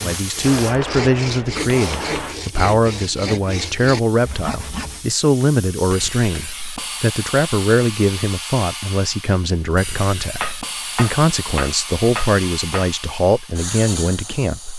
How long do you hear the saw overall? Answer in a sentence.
The saw can be heard for 5 seconds in total.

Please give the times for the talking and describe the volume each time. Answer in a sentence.
The talking can be heard from 0.0 to 14.7 s, at a steady volume.